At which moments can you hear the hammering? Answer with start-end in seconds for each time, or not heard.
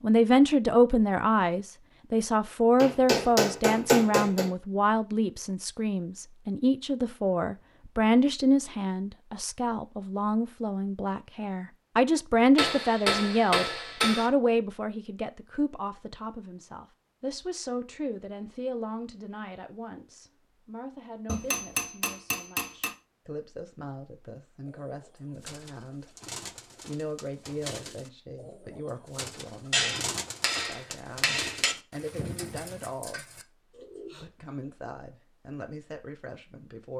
2.8-4.5, 12.6-14.3, 21.2-22.9, 29.7-31.8.